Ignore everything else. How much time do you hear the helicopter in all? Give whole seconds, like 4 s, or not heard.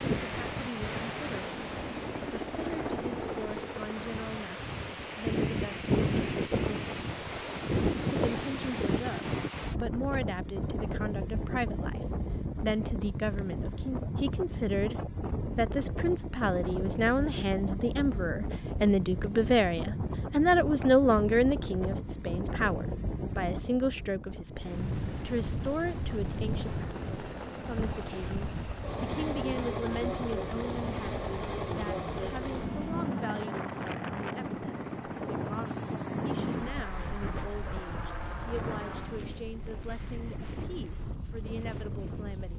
19 s.